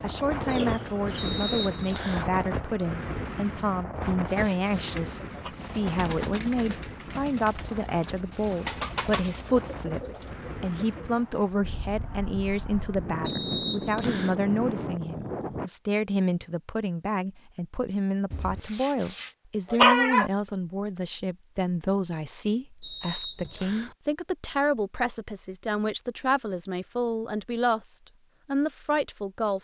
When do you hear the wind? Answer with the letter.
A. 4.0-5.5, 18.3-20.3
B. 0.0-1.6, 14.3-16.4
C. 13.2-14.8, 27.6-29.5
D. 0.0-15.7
D.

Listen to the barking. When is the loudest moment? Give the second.
20 s.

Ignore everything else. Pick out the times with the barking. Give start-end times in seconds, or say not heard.
4.0-5.5, 18.3-20.3.